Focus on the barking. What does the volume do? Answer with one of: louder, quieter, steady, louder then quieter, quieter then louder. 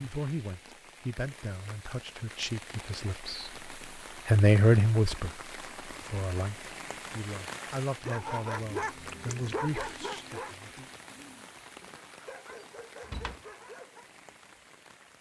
quieter then louder.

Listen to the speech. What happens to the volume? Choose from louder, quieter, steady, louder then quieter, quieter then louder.
louder then quieter.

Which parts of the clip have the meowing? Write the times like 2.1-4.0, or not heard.
not heard.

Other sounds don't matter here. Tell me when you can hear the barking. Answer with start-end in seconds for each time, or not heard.
8.1-14.1.